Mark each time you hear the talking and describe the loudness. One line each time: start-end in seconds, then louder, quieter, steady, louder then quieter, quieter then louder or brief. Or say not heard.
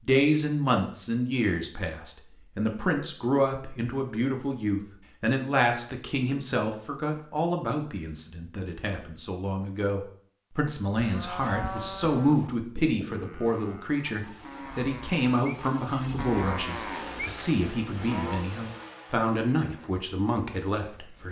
0.0-21.2 steady.